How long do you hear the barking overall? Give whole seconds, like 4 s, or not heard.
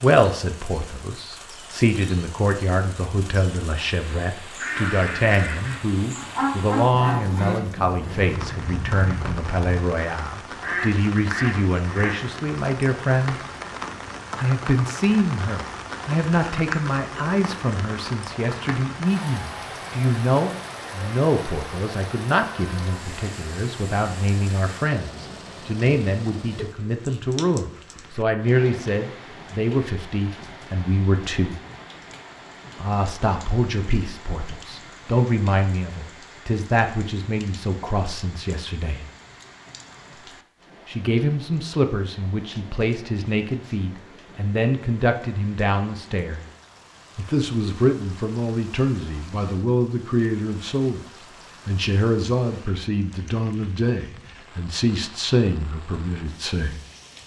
not heard.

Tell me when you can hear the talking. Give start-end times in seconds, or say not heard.
0.0-13.4, 14.3-31.6, 32.8-39.0, 40.9-46.5, 47.1-51.0, 51.6-56.8.